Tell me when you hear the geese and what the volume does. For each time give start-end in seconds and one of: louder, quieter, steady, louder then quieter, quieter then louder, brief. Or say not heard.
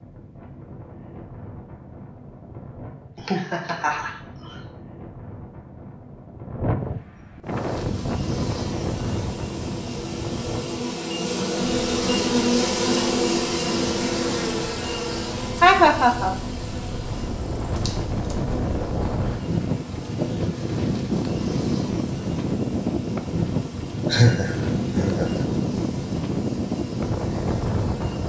not heard.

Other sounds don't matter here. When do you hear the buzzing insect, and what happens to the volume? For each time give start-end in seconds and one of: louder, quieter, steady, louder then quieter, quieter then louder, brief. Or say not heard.
7.5-28.2 louder then quieter.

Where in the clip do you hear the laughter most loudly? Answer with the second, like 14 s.
16 s.